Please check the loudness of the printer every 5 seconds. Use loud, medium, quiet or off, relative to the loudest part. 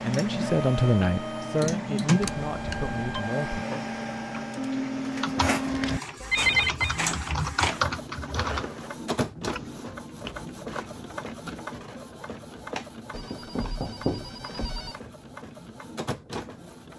loud, loud, medium, medium.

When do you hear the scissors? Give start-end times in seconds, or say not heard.
not heard.